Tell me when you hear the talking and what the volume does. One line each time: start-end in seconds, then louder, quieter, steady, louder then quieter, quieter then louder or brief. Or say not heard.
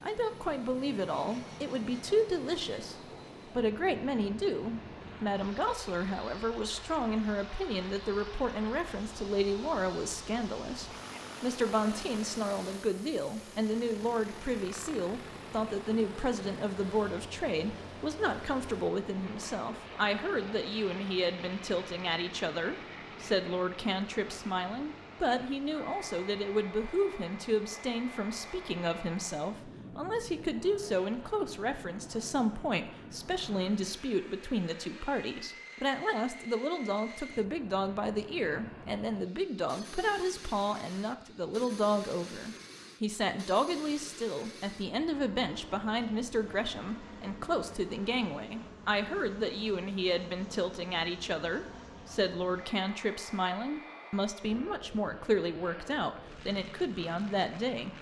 0.0-57.9 steady.